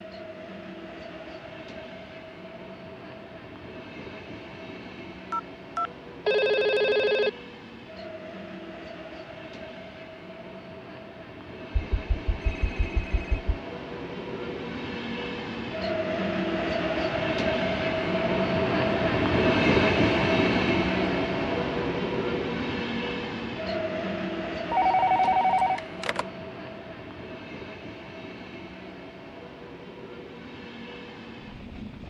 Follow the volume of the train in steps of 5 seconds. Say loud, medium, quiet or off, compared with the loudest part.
quiet, quiet, quiet, loud, loud, quiet, quiet.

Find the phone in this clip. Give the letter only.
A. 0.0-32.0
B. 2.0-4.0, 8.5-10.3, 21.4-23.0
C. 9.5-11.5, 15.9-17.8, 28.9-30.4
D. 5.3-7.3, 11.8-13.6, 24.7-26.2
D.